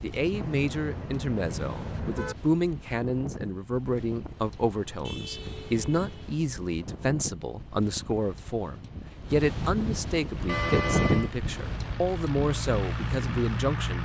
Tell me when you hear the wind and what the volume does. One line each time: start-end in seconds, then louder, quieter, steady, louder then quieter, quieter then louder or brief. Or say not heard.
0.0-13.8 louder.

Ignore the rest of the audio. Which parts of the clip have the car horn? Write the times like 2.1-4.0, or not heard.
0.3-2.4, 5.0-6.3, 10.4-11.3.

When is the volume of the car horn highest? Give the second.
11 s.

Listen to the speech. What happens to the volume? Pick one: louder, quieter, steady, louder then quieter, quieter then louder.
steady.